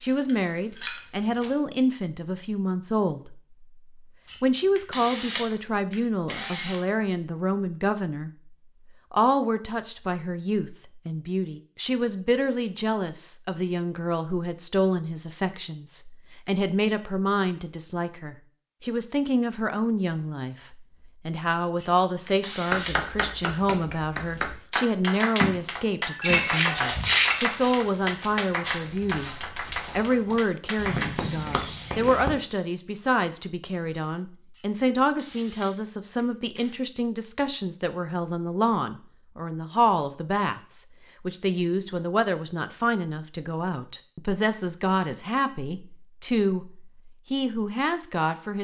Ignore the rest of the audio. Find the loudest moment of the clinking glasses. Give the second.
27 s.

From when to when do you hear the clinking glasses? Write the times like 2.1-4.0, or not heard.
0.2-1.0, 26.0-27.4.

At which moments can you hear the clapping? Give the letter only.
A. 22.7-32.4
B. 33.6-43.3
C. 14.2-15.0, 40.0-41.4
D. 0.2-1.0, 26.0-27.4
A.